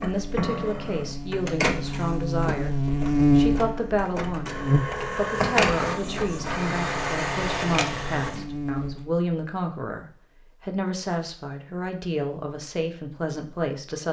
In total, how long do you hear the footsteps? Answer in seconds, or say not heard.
not heard.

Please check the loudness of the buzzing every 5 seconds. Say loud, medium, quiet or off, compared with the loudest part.
loud, medium, off.